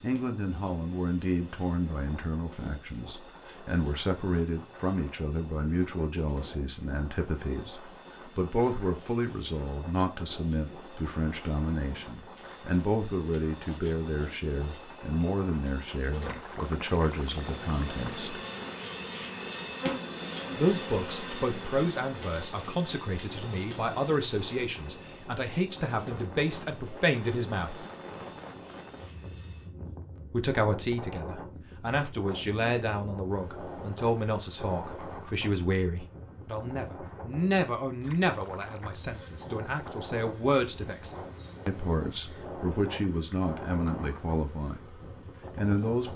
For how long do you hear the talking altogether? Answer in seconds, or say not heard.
41 s.